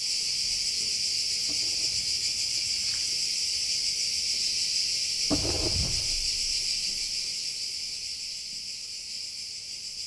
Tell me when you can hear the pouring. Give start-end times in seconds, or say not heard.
1.4-3.1, 5.3-6.2.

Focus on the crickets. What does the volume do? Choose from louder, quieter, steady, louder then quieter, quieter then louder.
quieter.